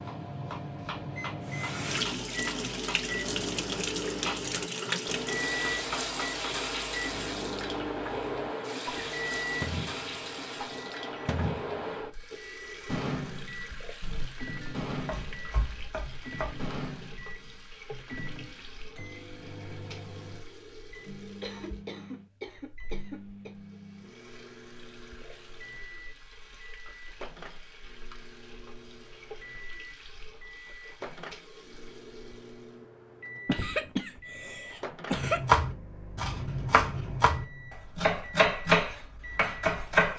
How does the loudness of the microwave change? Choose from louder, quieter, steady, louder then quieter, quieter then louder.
quieter.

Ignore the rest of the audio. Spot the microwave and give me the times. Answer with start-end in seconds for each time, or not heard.
0.0-39.9.